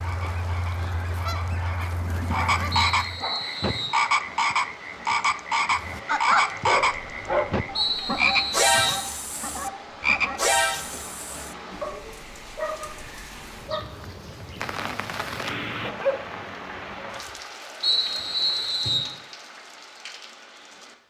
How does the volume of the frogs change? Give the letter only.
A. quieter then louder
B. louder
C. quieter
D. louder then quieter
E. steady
B.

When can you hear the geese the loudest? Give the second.
6 s.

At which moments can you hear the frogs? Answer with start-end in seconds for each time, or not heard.
0.0-11.6.